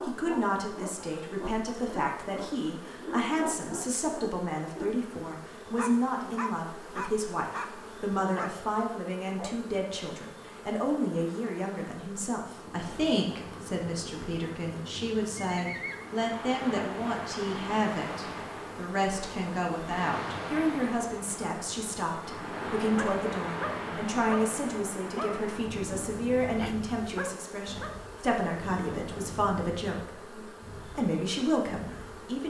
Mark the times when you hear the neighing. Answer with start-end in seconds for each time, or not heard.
15.4-16.1.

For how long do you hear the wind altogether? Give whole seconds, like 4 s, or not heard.
20 s.